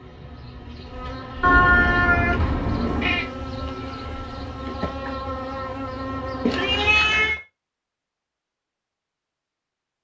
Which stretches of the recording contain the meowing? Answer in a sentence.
The meowing can be heard from 1.4 to 3.2 s and from 6.5 to 7.4 s.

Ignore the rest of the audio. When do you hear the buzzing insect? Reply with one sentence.
The buzzing insect can be heard from 0.0 to 7.0 s.